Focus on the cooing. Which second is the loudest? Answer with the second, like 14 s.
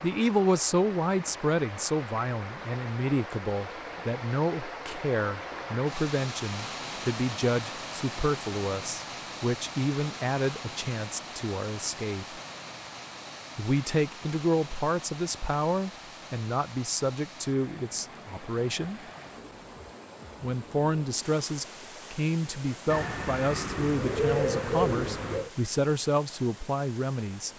24 s.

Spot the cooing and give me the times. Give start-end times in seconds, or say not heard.
22.9-25.5.